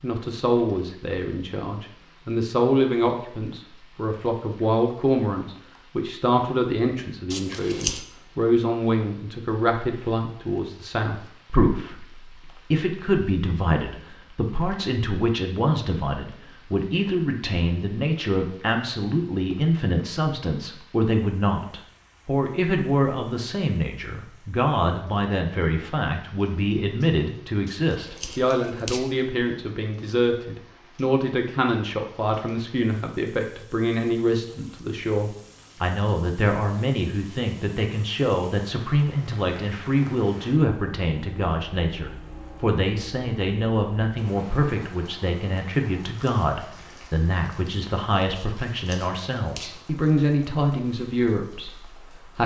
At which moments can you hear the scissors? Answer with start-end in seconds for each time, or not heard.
7.3-8.0, 27.6-29.1, 48.4-49.8.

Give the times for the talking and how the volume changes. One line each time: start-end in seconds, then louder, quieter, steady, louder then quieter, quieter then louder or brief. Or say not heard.
0.0-52.4 steady.